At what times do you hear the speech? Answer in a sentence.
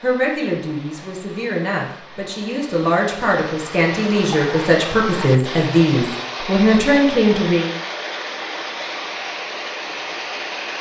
The speech can be heard from 0.0 to 7.7 s.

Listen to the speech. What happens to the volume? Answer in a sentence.
The volume of the speech goes up.